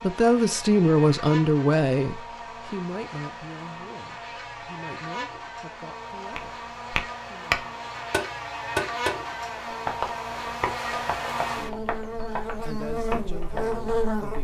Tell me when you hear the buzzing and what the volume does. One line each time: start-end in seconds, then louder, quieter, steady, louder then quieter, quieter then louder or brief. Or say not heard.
0.0-14.3 louder.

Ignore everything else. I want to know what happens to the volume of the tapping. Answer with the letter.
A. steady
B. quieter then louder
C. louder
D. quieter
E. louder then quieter
D.